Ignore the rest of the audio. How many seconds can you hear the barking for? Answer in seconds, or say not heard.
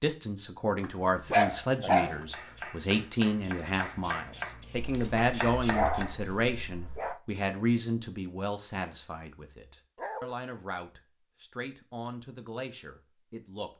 4 s.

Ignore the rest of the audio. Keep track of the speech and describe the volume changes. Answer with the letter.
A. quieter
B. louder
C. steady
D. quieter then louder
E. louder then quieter
A.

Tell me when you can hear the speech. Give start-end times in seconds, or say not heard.
0.0-13.7.